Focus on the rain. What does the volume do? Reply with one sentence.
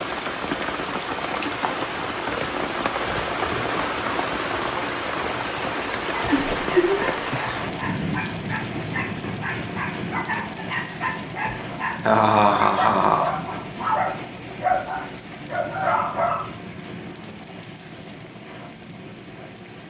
The volume of the rain goes down.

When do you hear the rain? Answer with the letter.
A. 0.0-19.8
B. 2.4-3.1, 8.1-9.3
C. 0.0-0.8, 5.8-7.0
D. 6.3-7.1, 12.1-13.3
A.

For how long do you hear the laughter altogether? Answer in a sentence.
The laughter can be heard for 2 seconds in total.